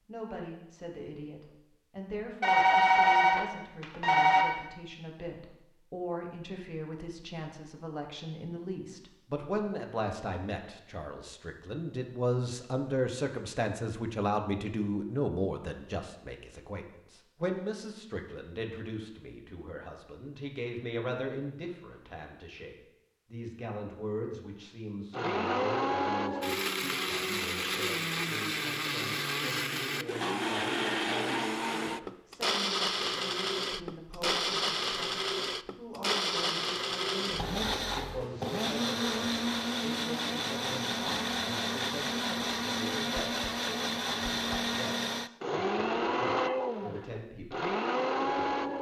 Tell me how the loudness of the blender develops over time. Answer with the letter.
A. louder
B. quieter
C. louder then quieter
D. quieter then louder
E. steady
E.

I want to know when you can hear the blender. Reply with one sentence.
You can hear the blender from 25.1 to 48.7 s.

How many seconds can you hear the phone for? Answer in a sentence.
The phone can be heard for 2 seconds in total.